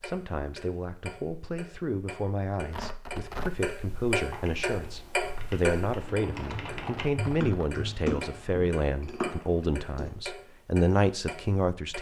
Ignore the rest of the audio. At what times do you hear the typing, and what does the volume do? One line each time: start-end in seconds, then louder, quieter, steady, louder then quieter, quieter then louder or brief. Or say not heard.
4.3-10.1 louder.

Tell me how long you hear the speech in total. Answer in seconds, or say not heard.
12 s.